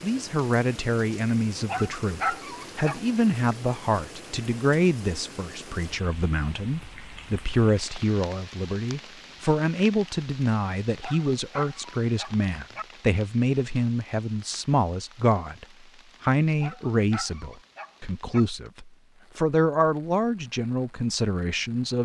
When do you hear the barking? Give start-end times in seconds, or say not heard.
1.6-3.0, 10.9-12.8, 16.4-18.4.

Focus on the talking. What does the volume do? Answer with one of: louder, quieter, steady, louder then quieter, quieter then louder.
steady.